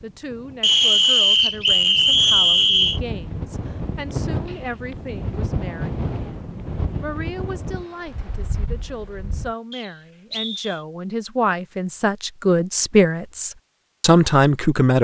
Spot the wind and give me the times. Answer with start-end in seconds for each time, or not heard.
0.0-9.6.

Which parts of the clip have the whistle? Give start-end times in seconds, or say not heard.
0.6-3.0, 9.7-10.8.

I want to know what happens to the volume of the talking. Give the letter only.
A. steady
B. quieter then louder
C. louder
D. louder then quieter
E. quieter
C.